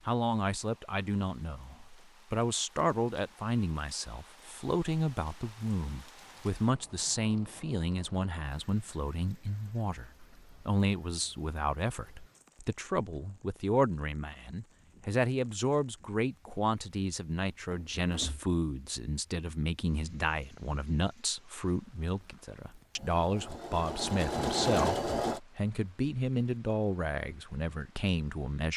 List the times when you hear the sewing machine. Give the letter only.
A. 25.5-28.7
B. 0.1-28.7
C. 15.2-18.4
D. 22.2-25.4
D.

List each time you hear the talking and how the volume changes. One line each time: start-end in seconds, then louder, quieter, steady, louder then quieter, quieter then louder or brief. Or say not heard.
0.1-28.7 steady.